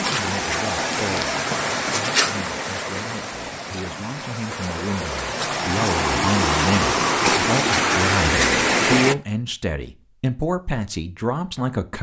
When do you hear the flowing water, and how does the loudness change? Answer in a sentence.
The flowing water can be heard from 0.0 to 9.2 s, getting quieter then louder.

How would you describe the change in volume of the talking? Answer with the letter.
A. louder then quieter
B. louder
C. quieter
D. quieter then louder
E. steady
B.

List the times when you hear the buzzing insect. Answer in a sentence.
You can't hear the buzzing insect here.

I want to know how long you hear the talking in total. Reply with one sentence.
You can hear the talking for 12 seconds altogether.